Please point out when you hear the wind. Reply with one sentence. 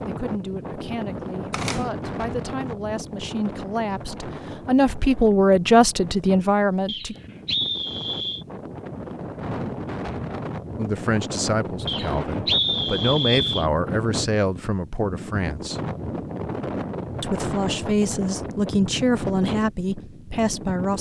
You can hear the wind from 0.0 to 20.9 s.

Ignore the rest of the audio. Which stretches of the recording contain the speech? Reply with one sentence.
The speech can be heard from 0.0 to 7.2 s, from 10.8 to 15.8 s and from 17.2 to 20.9 s.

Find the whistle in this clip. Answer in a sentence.
You can hear the whistle from 6.8 to 8.4 s and from 11.8 to 13.7 s.